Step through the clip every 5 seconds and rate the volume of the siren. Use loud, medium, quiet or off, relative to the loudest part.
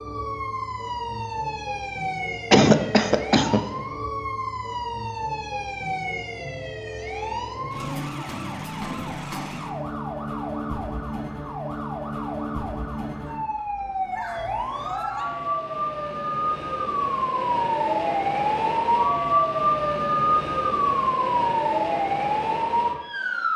medium, medium, medium, loud, loud.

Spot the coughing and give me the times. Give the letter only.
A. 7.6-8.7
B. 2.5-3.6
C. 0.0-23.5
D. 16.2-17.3
B.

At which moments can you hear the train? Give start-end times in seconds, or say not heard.
not heard.